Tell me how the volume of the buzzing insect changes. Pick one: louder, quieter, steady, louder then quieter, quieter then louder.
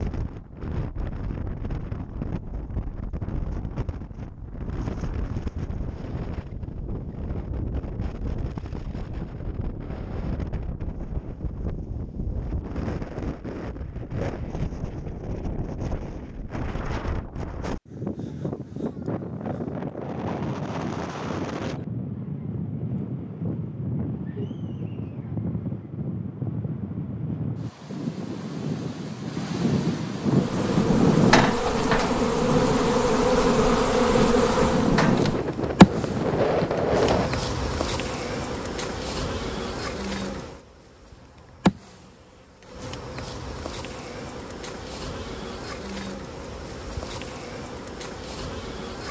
quieter.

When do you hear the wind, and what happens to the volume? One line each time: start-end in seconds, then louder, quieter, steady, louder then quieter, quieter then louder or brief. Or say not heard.
0.0-37.3 louder.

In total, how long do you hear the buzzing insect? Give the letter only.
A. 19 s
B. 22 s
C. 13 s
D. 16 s
A.